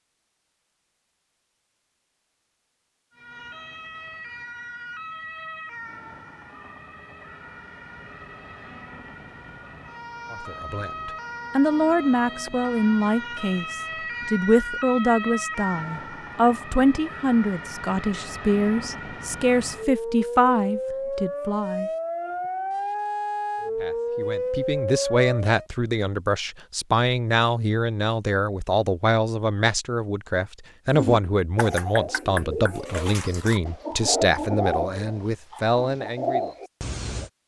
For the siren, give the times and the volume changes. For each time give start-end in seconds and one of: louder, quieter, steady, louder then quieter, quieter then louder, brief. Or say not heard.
3.1-25.6 louder.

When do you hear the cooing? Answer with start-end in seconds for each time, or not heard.
30.9-37.3.